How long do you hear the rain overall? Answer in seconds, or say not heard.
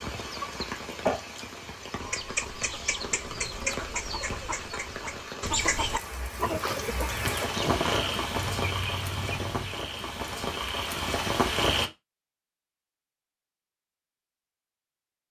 12 s.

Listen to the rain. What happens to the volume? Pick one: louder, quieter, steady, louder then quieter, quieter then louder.
louder.